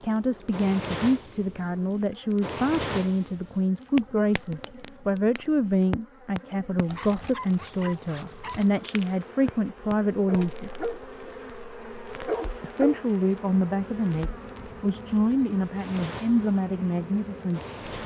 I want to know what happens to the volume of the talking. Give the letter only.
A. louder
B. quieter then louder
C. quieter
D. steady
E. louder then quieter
D.